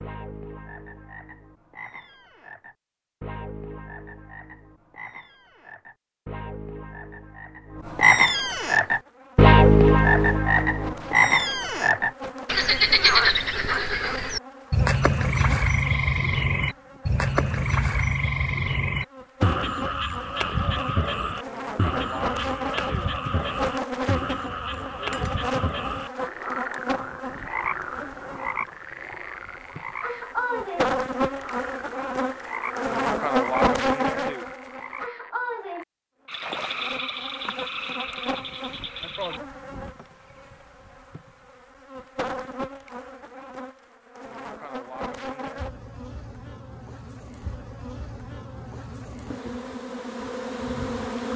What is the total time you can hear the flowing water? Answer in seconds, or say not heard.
not heard.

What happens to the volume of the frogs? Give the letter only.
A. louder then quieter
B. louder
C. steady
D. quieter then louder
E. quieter
A.